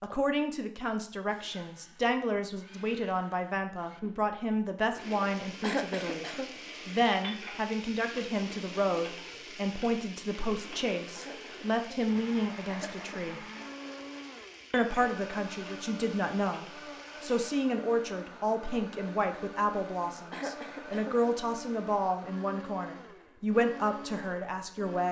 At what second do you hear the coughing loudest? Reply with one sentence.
The volume of the coughing peaks at 6 seconds.